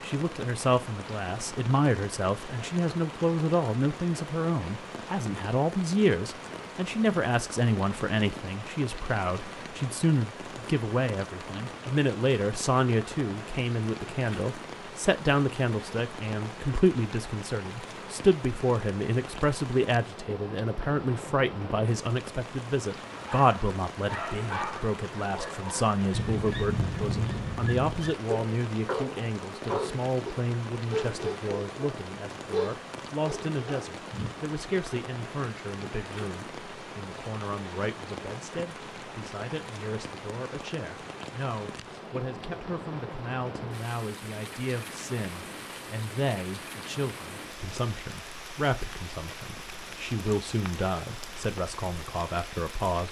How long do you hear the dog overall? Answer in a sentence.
The dog can be heard for 11 seconds in total.